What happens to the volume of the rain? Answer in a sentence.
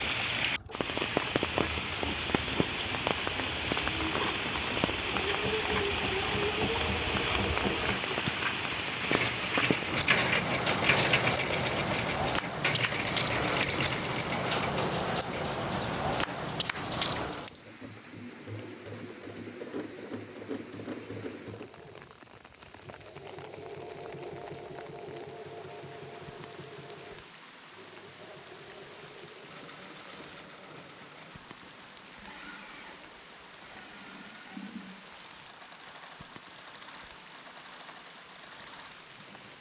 The volume of the rain goes down.